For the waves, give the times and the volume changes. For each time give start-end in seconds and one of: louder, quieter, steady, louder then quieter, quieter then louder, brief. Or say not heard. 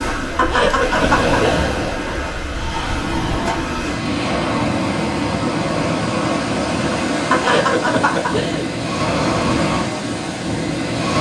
0.0-11.1 steady.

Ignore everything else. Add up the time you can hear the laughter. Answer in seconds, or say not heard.
3 s.